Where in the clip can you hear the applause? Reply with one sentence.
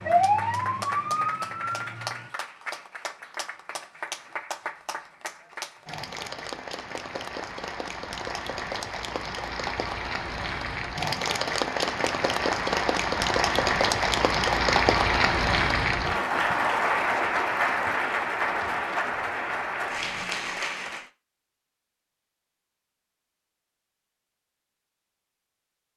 The applause can be heard from 0.0 to 21.1 s.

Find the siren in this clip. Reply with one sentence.
You can hear the siren from 0.0 to 2.3 s.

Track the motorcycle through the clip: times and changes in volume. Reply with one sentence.
You can't hear the motorcycle here.